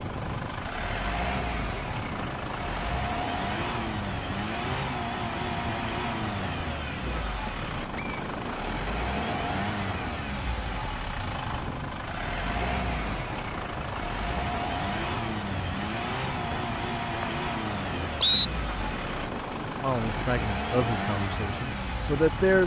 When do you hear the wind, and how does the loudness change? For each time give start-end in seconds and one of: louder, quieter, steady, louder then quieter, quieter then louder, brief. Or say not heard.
0.0-22.6 steady.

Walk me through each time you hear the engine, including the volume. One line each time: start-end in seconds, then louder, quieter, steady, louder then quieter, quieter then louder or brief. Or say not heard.
0.0-22.6 steady.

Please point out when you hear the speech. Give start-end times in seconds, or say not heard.
19.8-22.6.